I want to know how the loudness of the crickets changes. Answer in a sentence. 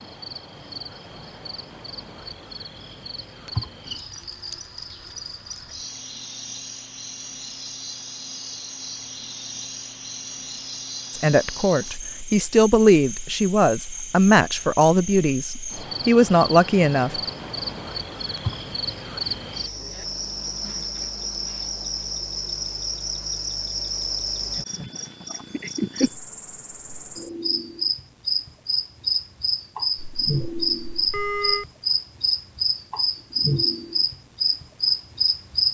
The loudness of the crickets goes up.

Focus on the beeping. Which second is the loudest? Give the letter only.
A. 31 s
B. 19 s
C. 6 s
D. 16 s
A.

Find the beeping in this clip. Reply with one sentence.
You can hear the beeping from 29.9 to 31.6 s.